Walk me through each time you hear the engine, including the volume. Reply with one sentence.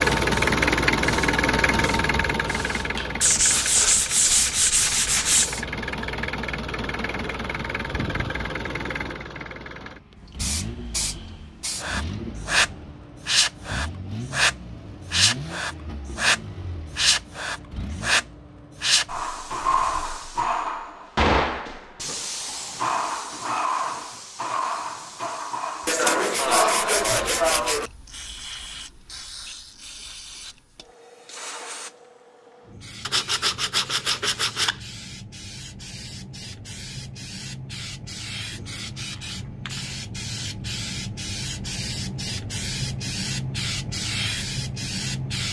The engine can be heard from 0.0 to 18.4 s, getting quieter.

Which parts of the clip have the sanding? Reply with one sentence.
You can hear the sanding from 3.2 to 5.5 s, from 25.9 to 27.9 s and from 33.0 to 34.8 s.